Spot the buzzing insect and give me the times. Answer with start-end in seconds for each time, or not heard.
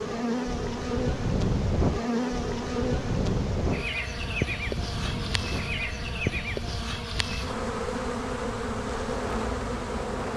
0.0-10.3.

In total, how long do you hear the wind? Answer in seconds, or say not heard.
10 s.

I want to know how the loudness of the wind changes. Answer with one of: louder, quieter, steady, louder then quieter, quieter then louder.
quieter.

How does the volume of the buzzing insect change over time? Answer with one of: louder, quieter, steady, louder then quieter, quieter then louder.
steady.